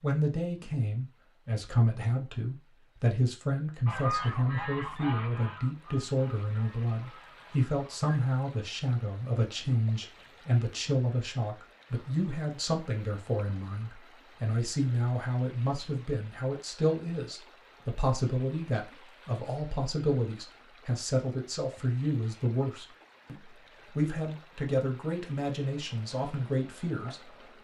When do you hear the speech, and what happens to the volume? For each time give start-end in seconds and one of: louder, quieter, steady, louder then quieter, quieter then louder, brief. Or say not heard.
0.0-27.3 steady.